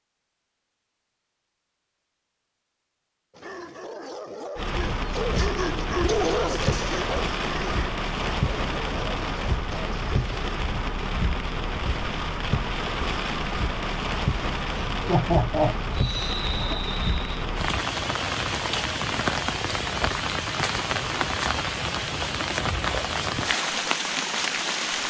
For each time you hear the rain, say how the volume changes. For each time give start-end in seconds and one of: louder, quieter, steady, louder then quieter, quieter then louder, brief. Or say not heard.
4.5-25.0 steady.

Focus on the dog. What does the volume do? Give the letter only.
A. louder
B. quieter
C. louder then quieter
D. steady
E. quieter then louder
C.